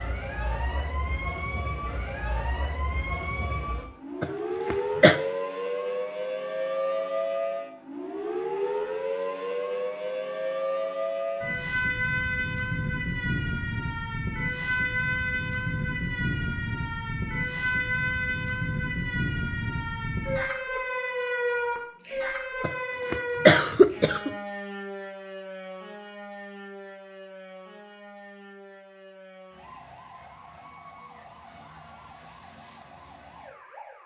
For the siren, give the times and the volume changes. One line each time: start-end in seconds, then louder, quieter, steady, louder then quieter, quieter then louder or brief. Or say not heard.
0.0-34.0 quieter.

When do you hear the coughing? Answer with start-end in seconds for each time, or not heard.
4.2-5.2, 22.6-24.3.